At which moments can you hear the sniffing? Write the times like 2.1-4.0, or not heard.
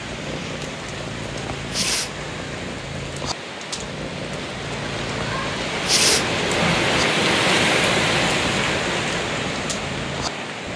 1.7-2.1, 5.8-6.2.